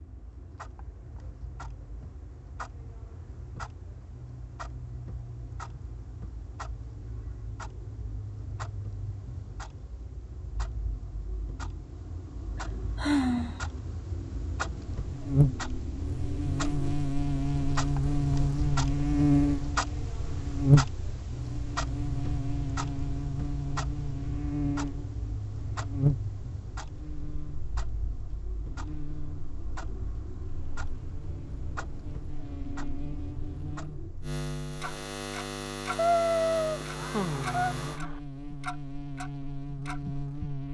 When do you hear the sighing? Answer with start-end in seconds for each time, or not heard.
12.9-13.6, 37.0-38.2.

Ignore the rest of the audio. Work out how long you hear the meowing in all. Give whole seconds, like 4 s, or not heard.
2 s.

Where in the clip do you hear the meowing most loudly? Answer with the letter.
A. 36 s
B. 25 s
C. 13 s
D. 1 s
A.